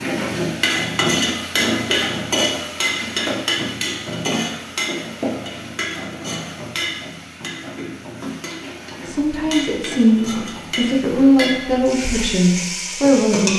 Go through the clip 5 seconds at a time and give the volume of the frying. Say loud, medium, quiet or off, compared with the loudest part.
loud, medium, medium.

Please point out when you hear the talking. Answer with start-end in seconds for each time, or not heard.
9.1-13.5.